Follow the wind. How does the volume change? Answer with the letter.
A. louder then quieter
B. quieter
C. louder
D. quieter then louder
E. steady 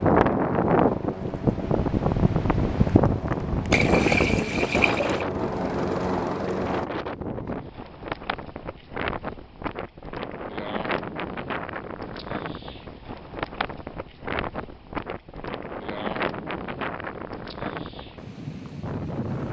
B.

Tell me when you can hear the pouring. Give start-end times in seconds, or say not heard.
3.7-5.2.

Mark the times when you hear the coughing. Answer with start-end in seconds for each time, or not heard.
not heard.